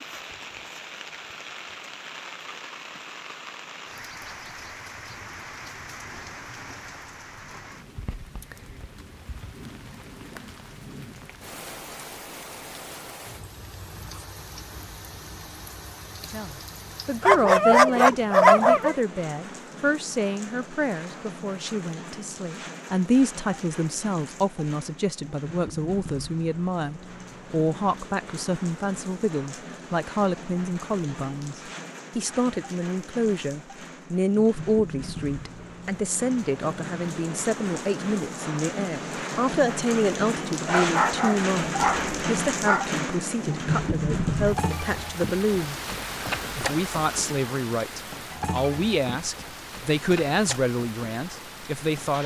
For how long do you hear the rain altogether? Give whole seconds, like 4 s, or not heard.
52 s.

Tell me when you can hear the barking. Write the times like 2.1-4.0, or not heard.
17.2-18.9, 40.6-42.9.